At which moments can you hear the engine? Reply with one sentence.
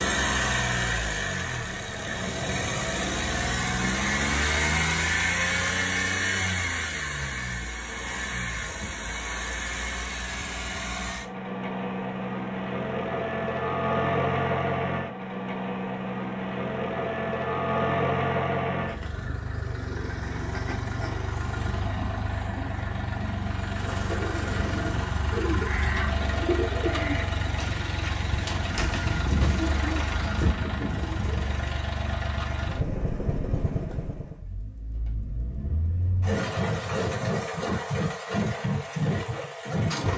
The engine can be heard from 0.0 to 40.1 s.